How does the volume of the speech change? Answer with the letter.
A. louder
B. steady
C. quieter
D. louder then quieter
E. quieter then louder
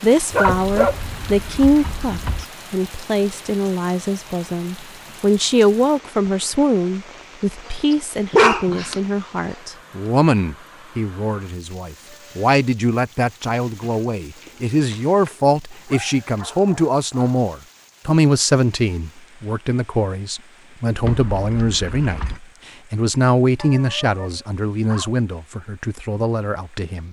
B.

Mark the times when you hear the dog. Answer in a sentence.
You can hear the dog from 0.3 to 1.2 s, from 7.9 to 9.0 s, from 15.7 to 17.4 s and from 23.6 to 25.2 s.